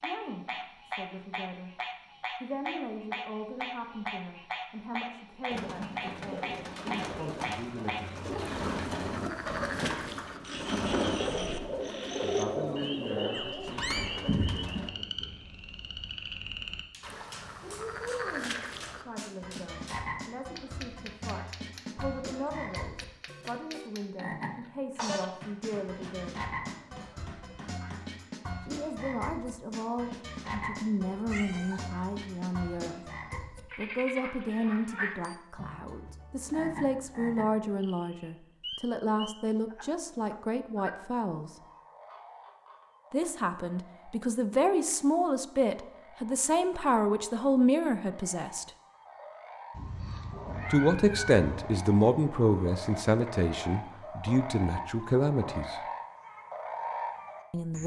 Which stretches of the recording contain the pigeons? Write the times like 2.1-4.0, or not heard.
5.5-14.9.